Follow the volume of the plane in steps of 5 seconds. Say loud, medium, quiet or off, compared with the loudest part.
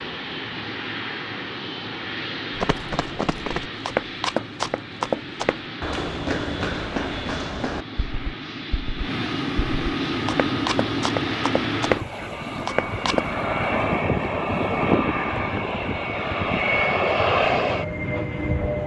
medium, medium, loud, loud.